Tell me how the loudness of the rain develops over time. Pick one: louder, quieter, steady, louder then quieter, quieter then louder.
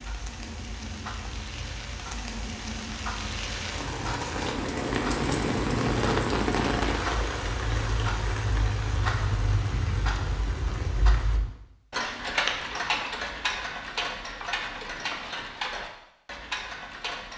louder then quieter.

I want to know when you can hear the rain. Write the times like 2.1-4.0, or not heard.
0.0-11.4.